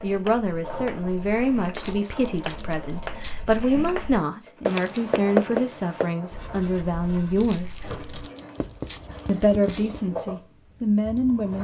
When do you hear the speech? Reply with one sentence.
The speech can be heard from 0.0 to 7.8 s and from 9.2 to 11.5 s.